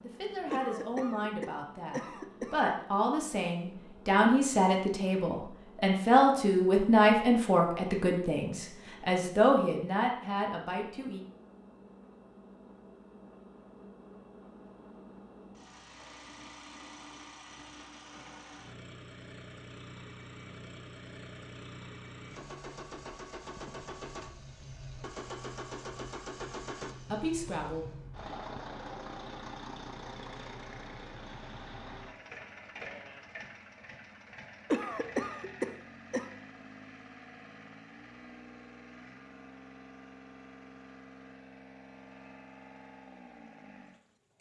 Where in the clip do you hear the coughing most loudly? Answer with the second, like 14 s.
35 s.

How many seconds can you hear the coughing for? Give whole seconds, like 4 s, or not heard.
4 s.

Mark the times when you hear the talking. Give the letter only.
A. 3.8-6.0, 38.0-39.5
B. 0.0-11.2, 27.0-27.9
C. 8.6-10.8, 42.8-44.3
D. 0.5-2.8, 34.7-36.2
B.